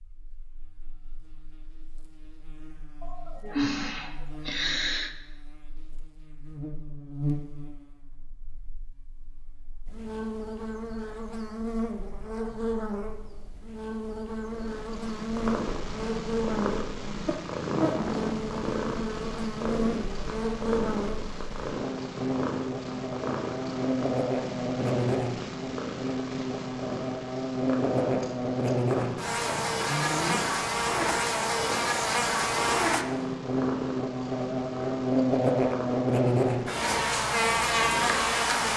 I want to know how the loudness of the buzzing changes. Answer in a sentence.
The volume of the buzzing goes up.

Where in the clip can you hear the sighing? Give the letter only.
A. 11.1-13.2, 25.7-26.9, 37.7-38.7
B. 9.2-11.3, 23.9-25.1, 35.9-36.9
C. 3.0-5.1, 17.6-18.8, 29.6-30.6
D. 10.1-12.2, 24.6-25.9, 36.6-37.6
C.